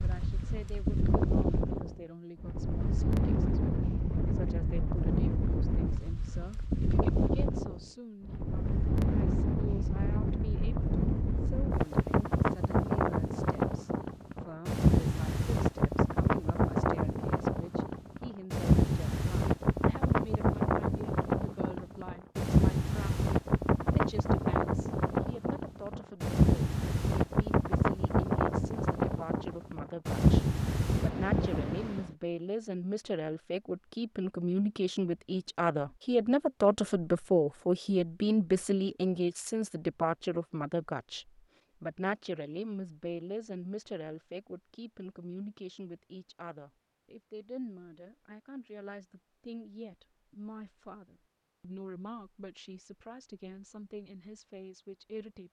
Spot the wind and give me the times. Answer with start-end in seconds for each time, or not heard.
0.0-32.1.